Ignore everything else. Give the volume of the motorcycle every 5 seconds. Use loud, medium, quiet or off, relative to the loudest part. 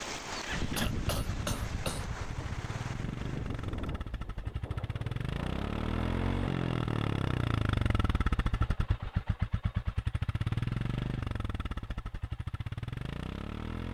medium, loud, loud.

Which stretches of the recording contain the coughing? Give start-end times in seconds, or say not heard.
0.8-2.1.